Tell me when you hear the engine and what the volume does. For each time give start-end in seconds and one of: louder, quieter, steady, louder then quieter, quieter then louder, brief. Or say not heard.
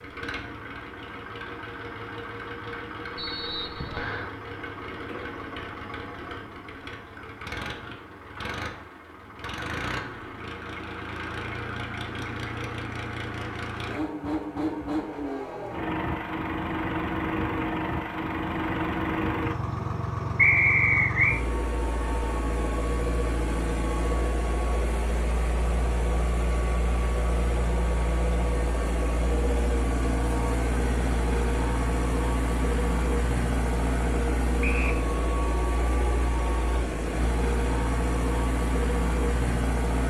0.0-40.0 louder.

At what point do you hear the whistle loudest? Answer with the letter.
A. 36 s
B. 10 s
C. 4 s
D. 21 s
D.